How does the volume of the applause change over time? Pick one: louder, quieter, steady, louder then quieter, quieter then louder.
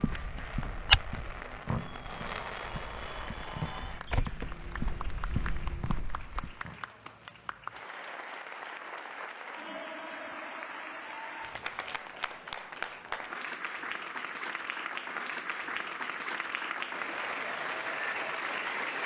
louder.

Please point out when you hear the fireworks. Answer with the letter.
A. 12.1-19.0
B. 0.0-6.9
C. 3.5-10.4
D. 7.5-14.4
B.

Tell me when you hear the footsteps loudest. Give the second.
1 s.